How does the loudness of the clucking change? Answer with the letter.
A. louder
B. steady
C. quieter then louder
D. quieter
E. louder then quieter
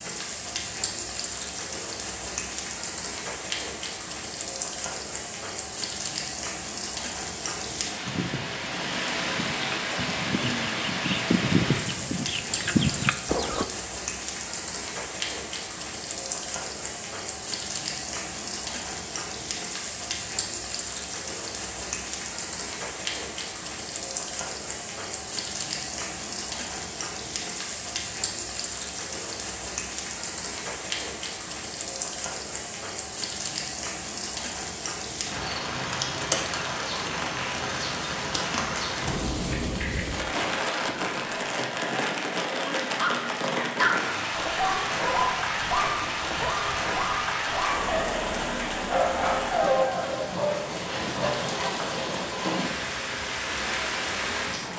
A.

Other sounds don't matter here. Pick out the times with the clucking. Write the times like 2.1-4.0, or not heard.
8.0-13.7.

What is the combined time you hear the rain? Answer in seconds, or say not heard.
55 s.